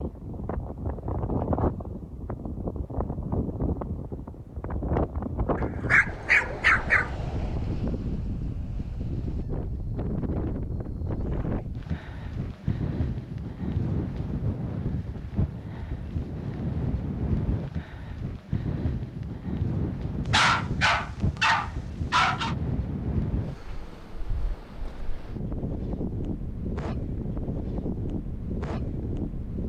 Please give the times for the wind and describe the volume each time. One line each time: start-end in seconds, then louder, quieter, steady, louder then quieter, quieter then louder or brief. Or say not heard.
0.0-29.6 steady.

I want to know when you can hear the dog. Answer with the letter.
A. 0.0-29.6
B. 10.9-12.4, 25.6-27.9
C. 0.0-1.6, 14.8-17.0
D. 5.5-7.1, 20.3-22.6
D.